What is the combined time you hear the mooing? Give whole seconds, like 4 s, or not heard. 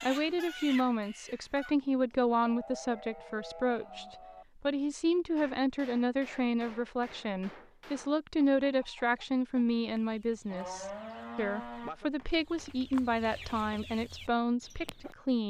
4 s.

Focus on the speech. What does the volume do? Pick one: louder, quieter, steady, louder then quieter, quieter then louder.
steady.